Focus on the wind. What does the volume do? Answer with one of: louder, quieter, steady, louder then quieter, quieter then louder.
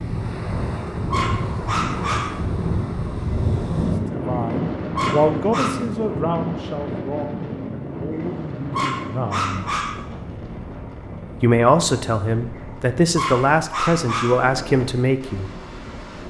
quieter.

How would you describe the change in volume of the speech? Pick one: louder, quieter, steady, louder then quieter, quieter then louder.
quieter then louder.